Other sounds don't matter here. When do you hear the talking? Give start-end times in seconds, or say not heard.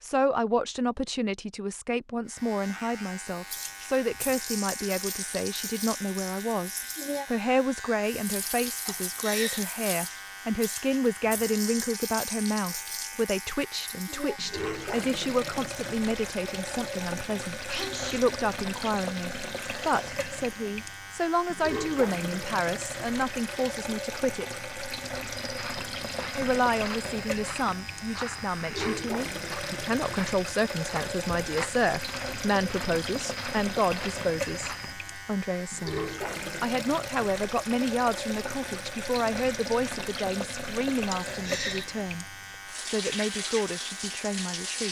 0.0-24.4, 26.4-42.2, 42.9-44.8.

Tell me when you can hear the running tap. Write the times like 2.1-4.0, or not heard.
3.4-44.8.